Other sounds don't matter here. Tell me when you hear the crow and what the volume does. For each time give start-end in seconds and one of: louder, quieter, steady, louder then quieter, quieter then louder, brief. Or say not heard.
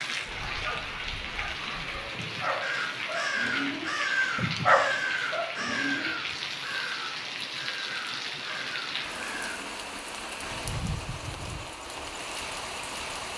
2.6-9.6 quieter.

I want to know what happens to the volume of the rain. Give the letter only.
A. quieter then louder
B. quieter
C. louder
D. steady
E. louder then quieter
D.